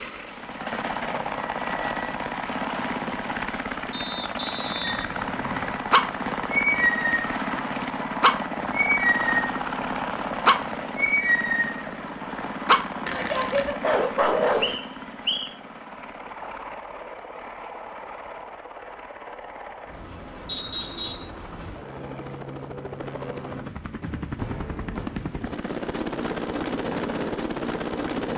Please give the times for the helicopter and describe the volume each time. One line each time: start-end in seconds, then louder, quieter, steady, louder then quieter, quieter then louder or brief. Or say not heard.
0.0-28.3 quieter then louder.